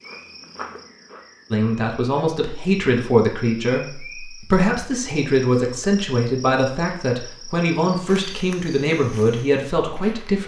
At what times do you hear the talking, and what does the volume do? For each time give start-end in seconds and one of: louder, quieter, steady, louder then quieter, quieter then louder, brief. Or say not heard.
1.5-10.4 steady.